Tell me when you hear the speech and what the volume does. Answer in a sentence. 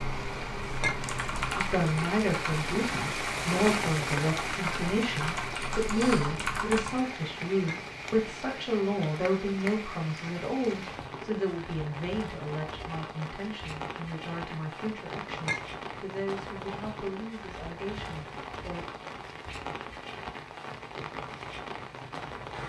You can hear the speech from 1.6 to 18.9 s, getting quieter.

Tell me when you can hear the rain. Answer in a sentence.
You can hear the rain from 0.0 to 22.6 s.